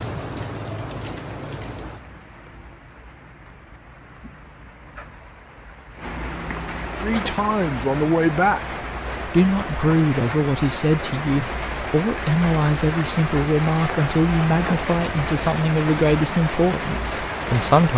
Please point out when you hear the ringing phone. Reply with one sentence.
The ringing phone can't be heard in this clip.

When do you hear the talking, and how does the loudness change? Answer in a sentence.
The talking can be heard briefly from 7.0 to 8.6 s; and from 9.2 to 17.9 s, at a steady volume.